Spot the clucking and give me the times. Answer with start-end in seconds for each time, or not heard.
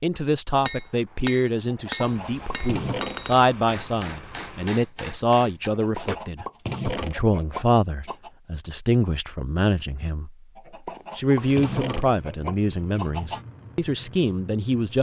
1.6-3.2, 5.7-8.3, 10.6-13.4.